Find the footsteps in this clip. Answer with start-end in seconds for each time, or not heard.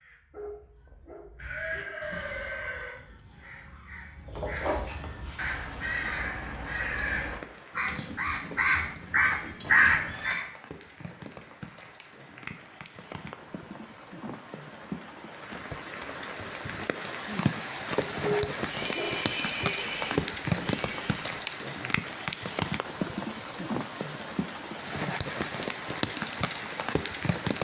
not heard.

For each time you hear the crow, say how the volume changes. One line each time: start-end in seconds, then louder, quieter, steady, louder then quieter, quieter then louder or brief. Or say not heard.
0.0-10.4 louder.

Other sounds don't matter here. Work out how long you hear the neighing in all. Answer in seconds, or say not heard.
5 s.